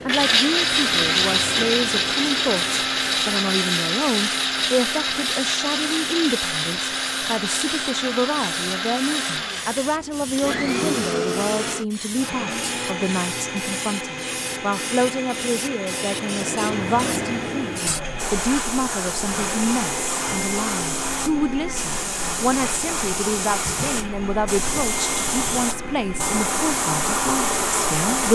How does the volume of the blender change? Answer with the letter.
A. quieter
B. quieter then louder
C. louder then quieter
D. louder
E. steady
A.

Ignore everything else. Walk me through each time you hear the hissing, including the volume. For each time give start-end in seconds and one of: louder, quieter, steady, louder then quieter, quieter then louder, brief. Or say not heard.
0.0-28.2 louder.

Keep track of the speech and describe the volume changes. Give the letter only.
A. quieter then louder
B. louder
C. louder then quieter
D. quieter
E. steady
E.